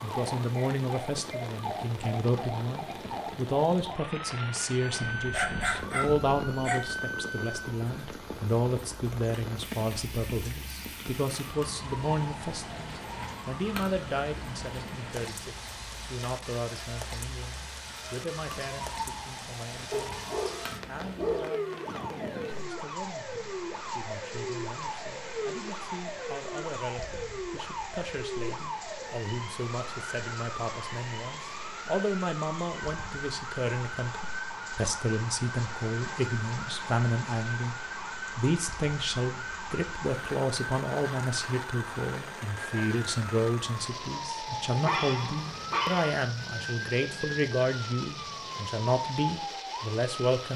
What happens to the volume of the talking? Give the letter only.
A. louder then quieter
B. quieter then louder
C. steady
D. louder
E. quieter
B.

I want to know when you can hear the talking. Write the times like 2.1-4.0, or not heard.
0.0-50.5.